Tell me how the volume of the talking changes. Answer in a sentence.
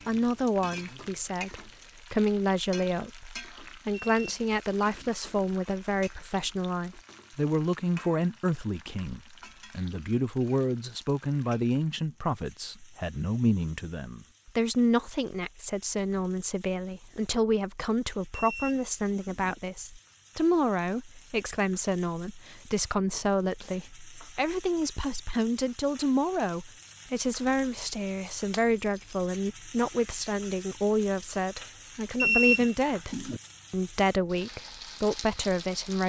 The volume of the talking stays about the same.